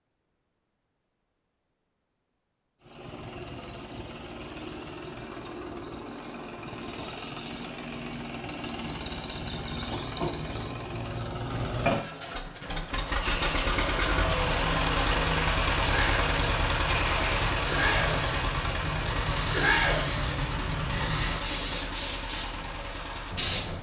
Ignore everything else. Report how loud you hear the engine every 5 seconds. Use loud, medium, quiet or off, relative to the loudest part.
quiet, medium, loud, loud, medium.